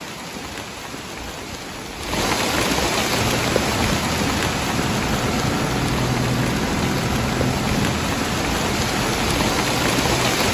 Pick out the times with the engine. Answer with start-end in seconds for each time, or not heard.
3.1-10.4.